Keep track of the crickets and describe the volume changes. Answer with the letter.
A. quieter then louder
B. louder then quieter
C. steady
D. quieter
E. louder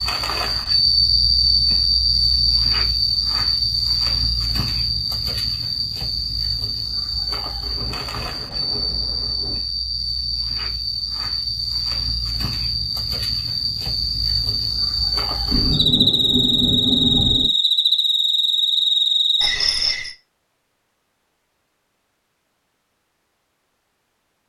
A.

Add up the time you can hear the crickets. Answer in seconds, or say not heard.
20 s.